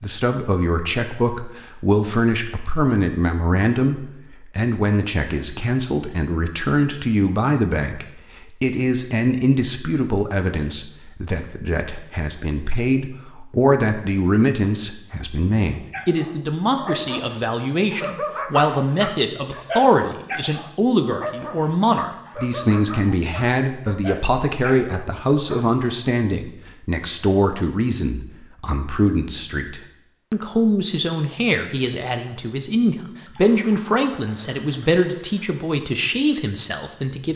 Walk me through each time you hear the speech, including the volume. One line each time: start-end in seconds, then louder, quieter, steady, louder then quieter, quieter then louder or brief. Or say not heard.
0.0-37.3 steady.